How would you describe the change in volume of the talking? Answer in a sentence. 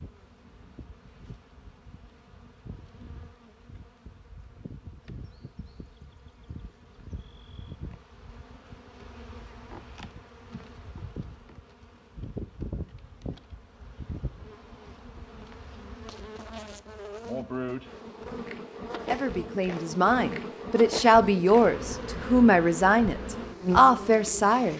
The volume of the talking goes up.